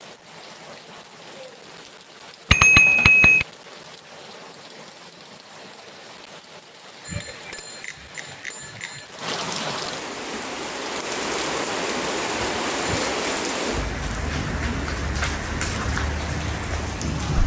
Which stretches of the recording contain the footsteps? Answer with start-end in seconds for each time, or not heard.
not heard.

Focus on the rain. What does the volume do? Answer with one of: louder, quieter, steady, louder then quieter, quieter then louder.
louder.